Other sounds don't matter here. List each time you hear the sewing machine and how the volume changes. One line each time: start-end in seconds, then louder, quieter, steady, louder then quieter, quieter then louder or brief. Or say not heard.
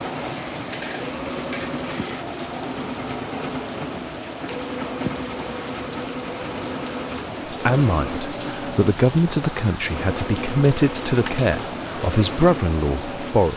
0.0-13.4 steady.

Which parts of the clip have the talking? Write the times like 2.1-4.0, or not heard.
7.5-13.5.